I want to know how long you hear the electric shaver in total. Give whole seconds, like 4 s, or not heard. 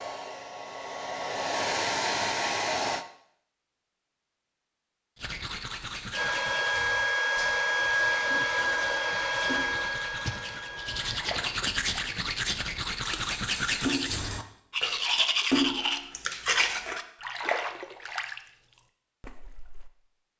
not heard.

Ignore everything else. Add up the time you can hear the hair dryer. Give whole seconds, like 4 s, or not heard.
8 s.